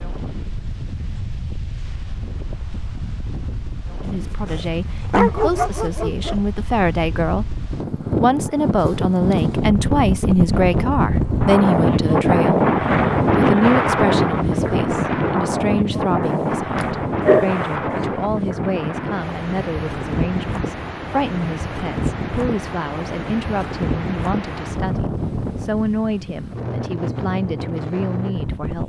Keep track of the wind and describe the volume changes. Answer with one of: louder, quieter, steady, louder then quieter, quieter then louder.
louder then quieter.